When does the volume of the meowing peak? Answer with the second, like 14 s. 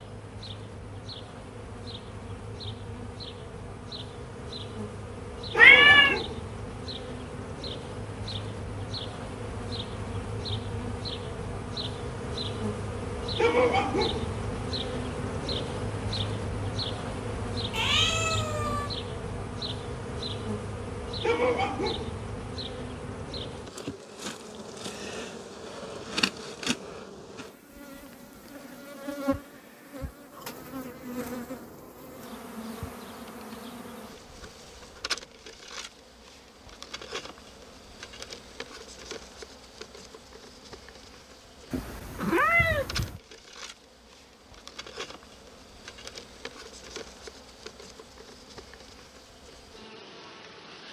6 s.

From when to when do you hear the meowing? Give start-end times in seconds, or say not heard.
5.5-6.2, 17.7-18.9, 41.7-43.2.